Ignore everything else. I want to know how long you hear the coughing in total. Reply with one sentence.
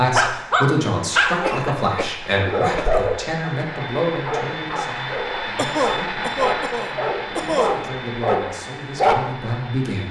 The coughing can be heard for 4 seconds in total.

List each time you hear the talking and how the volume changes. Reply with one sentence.
You can hear the talking from 0.0 to 10.0 s, getting quieter then louder.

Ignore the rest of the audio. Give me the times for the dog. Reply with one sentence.
You can hear the dog from 0.1 to 9.3 s.